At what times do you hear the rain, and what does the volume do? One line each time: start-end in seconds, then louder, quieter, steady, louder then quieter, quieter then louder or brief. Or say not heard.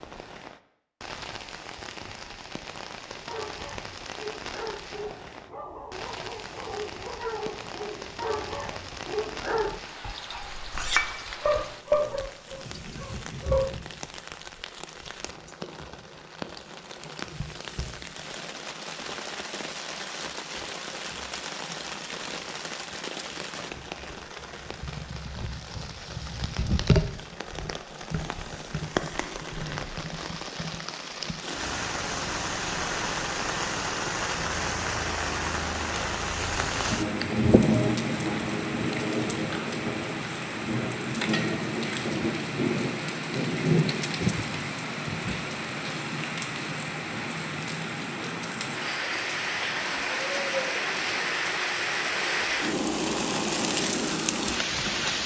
0.0-55.2 louder.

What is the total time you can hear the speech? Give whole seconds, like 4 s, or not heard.
not heard.